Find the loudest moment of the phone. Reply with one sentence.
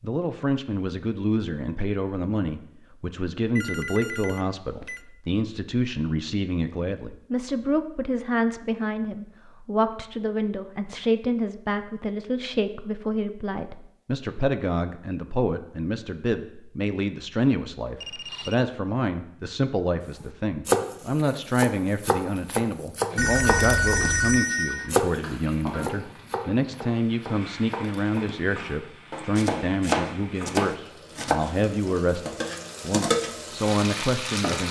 The volume of the phone peaks at 24 seconds.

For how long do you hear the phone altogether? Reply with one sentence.
You can hear the phone for 4 seconds altogether.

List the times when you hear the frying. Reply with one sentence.
The frying can be heard from 23.1 to 34.6 s.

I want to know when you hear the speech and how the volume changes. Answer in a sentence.
You can hear the speech from 0.0 to 34.6 s, at a steady volume.